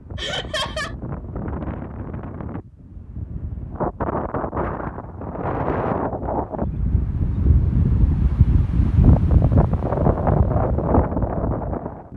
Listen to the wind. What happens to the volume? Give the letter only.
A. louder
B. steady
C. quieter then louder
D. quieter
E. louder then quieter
A.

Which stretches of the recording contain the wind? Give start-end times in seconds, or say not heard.
0.0-12.1.